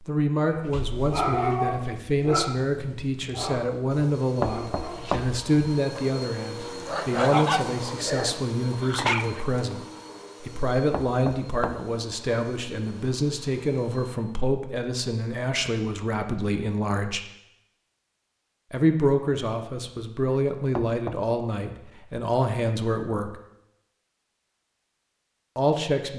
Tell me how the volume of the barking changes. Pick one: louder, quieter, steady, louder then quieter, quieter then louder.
quieter then louder.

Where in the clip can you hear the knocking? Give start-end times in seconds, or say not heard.
4.4-5.5, 10.9-11.8, 20.8-21.2.